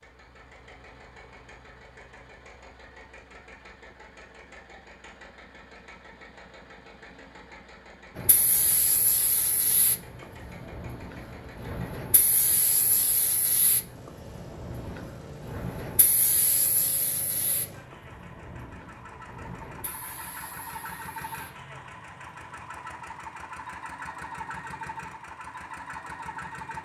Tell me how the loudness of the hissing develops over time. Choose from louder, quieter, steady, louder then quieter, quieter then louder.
quieter.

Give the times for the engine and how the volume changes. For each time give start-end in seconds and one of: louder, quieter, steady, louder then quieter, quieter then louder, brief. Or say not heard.
0.0-26.8 louder.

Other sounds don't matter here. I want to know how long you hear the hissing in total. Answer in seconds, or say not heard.
14 s.